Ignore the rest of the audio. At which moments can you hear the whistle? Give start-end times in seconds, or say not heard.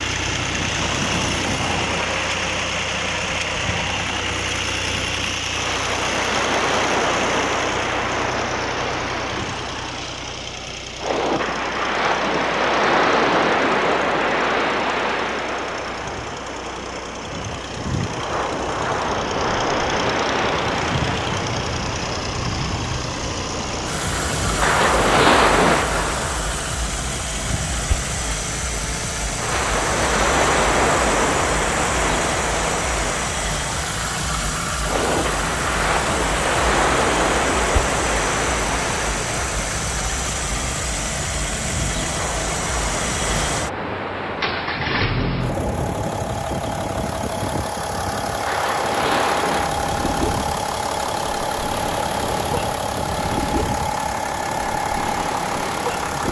not heard.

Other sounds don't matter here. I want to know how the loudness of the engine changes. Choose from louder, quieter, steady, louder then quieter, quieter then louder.
quieter then louder.